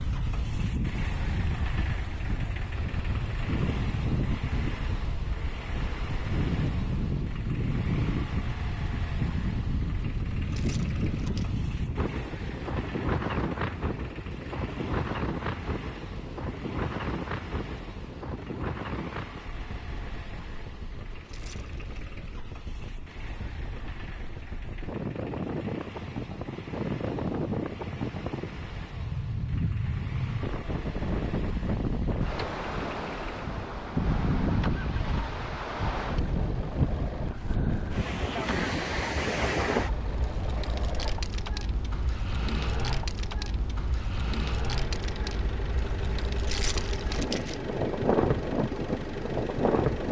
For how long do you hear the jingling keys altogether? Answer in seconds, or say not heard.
3 s.